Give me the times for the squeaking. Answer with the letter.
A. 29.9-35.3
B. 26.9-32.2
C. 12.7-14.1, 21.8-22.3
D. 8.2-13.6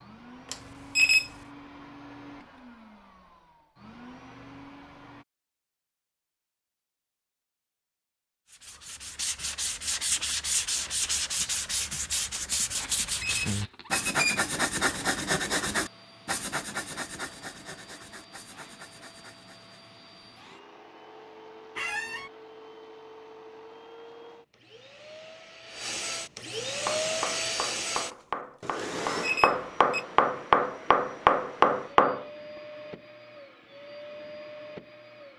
C.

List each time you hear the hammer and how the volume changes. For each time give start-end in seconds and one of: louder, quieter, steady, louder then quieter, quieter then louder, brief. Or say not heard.
26.9-32.2 louder.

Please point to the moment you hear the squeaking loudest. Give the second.
22 s.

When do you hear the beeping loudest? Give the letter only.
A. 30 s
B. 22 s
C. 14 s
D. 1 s
D.